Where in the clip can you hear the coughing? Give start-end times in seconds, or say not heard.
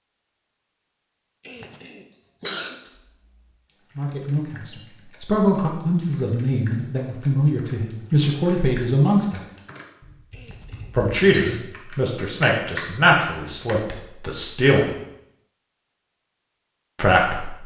1.4-2.9, 10.3-11.7.